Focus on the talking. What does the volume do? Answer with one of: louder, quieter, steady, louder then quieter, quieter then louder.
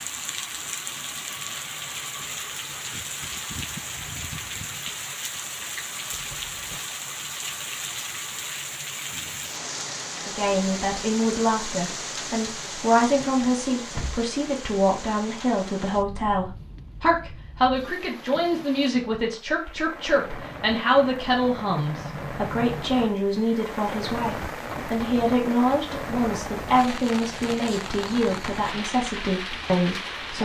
steady.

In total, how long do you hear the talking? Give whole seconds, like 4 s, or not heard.
20 s.